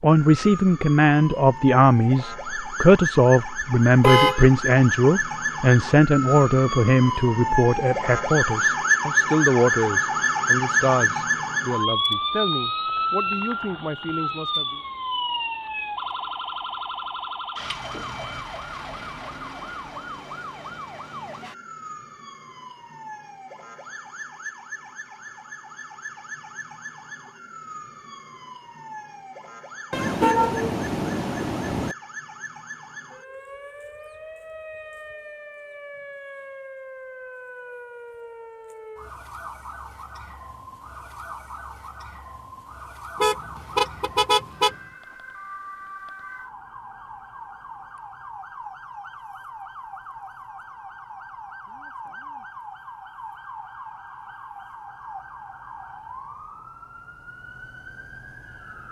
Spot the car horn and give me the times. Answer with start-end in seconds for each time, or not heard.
4.0-4.5, 29.9-31.9, 43.2-44.8.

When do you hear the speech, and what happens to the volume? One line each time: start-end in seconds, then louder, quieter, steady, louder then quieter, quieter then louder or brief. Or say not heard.
0.0-14.8 quieter.